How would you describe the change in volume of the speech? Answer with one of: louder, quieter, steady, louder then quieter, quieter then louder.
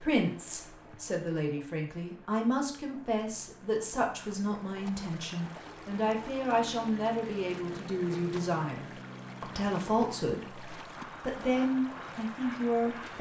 steady.